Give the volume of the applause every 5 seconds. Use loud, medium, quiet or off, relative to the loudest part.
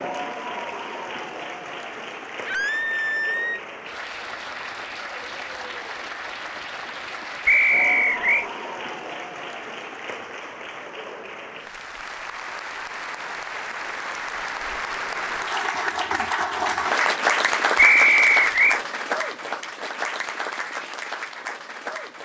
medium, medium, medium, loud, medium.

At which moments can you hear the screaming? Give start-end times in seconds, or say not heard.
2.5-3.6.